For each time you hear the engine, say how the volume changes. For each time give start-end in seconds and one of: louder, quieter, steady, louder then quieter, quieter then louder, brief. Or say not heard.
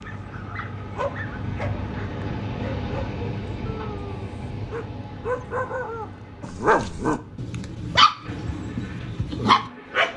0.0-10.1 quieter.